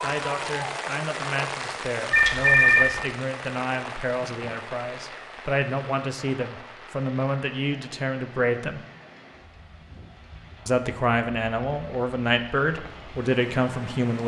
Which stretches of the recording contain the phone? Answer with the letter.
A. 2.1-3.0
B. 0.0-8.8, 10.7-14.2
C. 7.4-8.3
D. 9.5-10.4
A.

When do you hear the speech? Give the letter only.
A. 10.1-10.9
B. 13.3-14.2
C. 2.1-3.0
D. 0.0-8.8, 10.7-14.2
D.